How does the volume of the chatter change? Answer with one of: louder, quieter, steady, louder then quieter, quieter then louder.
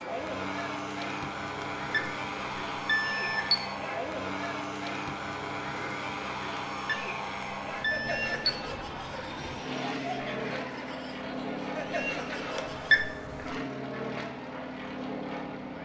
steady.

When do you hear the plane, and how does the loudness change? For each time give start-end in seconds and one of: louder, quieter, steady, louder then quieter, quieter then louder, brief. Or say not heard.
0.0-15.8 steady.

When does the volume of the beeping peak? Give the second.
13 s.